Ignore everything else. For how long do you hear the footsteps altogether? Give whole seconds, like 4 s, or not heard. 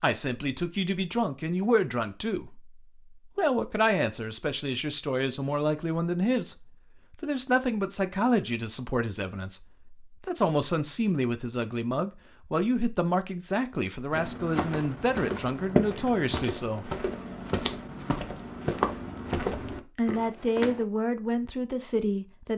7 s.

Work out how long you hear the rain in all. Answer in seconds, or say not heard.
not heard.